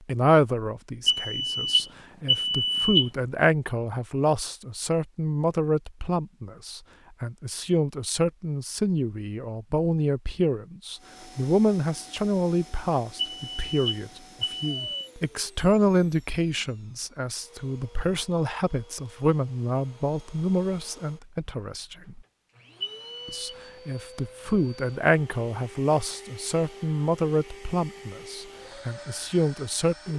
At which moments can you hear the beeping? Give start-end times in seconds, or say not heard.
1.1-3.1, 13.2-15.1, 22.8-23.6.